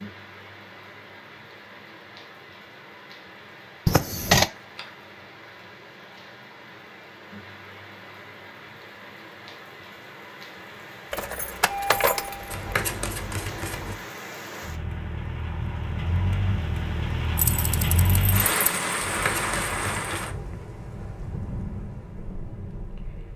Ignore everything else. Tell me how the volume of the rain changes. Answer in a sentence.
The loudness of the rain goes up.